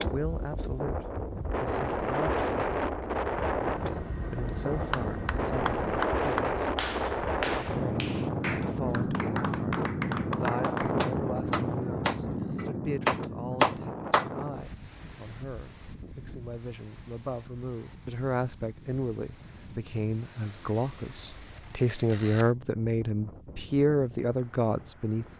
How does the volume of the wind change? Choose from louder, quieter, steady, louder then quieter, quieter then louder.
quieter.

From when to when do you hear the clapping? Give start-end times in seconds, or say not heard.
4.7-14.2.